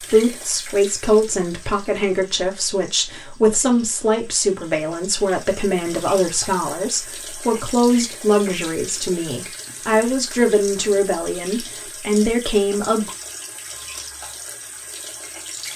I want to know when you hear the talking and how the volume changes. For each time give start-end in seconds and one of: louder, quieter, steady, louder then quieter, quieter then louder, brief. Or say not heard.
0.0-13.1 steady.